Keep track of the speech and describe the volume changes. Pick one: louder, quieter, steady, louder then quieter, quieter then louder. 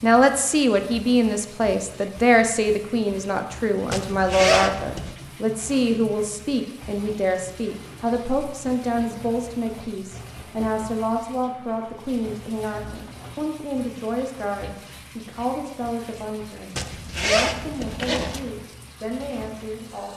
quieter.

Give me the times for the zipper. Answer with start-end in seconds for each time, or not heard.
3.9-5.2, 16.8-18.4.